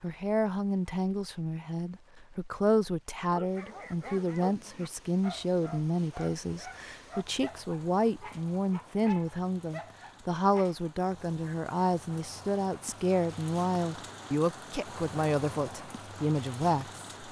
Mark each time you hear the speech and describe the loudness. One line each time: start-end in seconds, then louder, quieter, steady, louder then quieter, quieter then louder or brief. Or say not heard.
0.0-17.1 steady.